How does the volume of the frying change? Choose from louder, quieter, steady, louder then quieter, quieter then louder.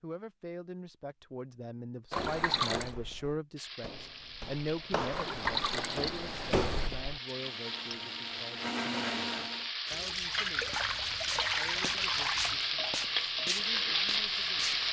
louder.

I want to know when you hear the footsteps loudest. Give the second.
7 s.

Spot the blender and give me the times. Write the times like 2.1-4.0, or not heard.
7.1-9.7.